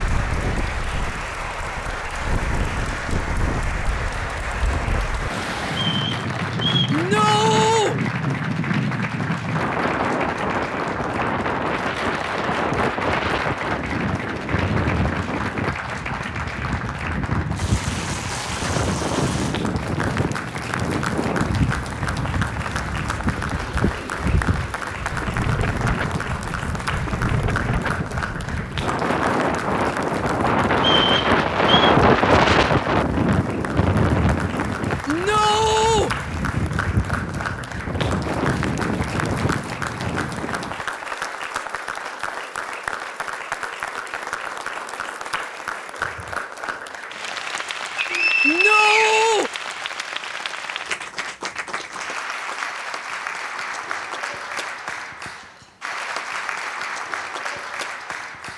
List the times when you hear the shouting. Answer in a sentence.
You can hear the shouting from 6.9 to 8.0 s, from 35.0 to 36.1 s and from 48.4 to 49.5 s.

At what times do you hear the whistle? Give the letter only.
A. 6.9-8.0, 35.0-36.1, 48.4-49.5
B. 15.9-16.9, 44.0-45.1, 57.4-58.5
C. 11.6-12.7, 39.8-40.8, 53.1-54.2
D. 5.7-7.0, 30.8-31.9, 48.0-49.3
D.